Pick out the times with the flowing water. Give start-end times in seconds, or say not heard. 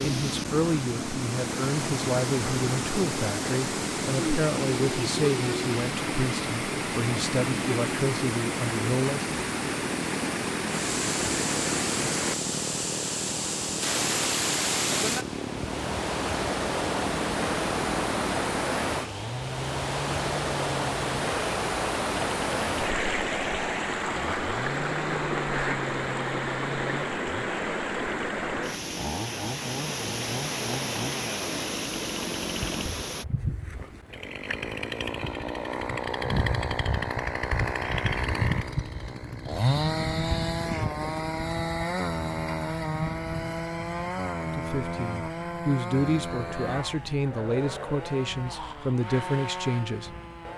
0.0-33.2.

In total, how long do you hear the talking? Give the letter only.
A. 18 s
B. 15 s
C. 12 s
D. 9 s
B.